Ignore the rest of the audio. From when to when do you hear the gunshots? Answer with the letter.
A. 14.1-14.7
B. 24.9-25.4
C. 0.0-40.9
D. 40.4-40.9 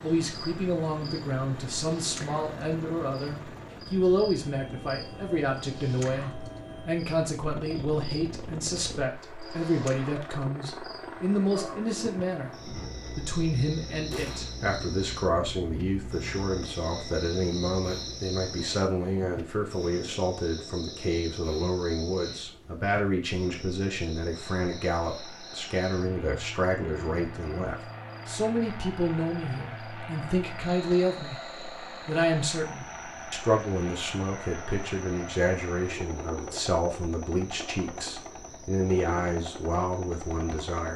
A.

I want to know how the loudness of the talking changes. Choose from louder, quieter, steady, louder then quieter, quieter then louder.
steady.